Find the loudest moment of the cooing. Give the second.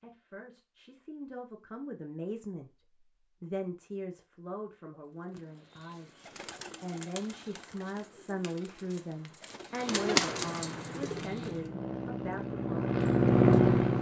10 s.